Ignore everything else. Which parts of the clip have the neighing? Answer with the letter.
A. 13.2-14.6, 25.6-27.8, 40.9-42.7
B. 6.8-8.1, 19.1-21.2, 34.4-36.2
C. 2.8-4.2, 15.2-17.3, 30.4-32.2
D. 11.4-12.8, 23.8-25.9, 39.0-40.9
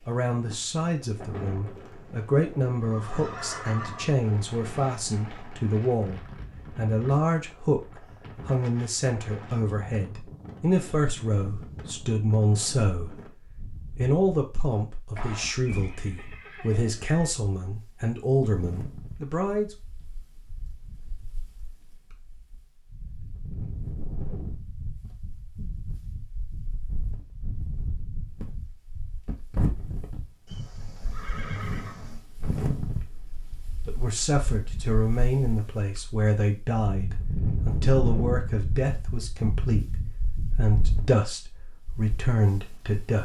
C.